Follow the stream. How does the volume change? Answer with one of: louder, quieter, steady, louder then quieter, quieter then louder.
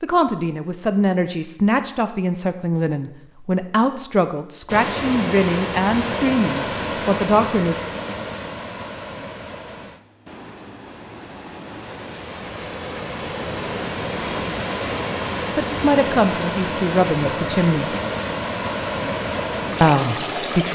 quieter then louder.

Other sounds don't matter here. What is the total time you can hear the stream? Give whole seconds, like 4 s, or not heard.
16 s.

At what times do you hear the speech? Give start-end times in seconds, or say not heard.
0.0-7.8, 15.5-17.9, 19.8-20.7.